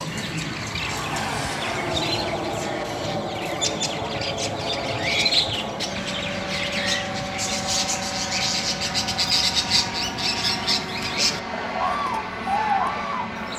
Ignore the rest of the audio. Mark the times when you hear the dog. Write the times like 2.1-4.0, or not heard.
not heard.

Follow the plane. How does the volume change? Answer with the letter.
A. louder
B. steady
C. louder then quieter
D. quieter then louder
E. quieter
B.